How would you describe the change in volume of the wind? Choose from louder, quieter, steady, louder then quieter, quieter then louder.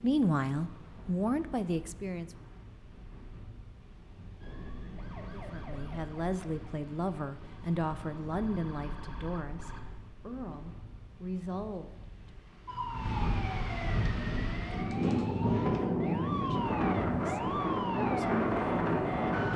louder.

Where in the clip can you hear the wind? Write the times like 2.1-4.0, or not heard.
0.0-19.5.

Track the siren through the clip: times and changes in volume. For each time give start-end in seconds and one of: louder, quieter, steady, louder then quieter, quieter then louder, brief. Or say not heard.
4.4-9.9 quieter then louder
12.7-19.5 steady.